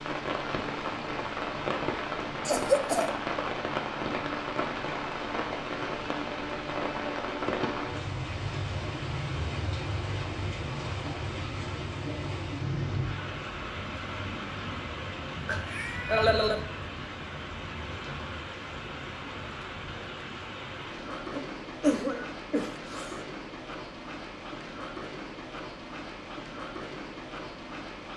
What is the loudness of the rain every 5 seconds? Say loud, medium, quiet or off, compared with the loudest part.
loud, loud, loud, medium, medium, medium.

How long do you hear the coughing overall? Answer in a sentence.
You can hear the coughing for 4 seconds altogether.